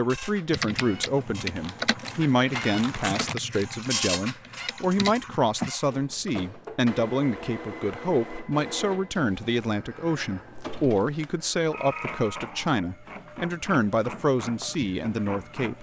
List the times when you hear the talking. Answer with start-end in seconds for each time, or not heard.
0.0-15.7.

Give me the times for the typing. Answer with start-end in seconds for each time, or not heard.
0.5-5.7.